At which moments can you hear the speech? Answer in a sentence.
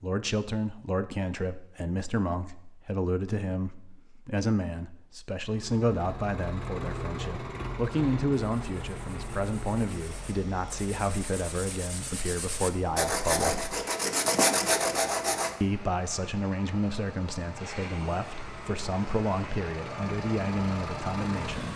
The speech can be heard from 0.0 to 13.6 s and from 15.6 to 21.7 s.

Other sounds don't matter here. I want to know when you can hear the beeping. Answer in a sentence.
The beeping can't be heard in this clip.